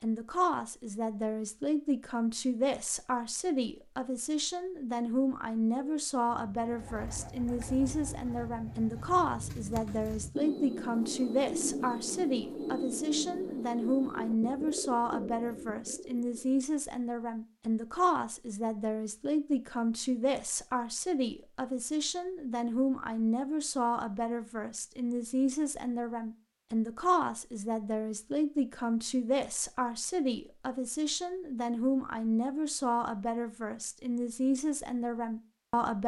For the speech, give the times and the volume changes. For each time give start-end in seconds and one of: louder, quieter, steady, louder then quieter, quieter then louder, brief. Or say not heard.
0.0-36.0 steady.